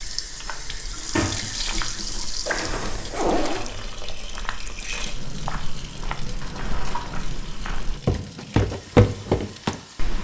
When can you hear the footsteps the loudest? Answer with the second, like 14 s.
9 s.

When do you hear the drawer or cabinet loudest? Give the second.
1 s.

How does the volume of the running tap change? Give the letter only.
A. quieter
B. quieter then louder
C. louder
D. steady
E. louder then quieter
A.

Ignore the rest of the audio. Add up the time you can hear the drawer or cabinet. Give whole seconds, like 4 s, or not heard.
3 s.